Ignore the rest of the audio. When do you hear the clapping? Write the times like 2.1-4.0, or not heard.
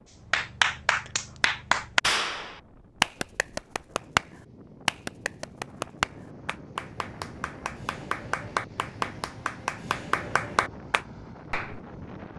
0.3-11.8.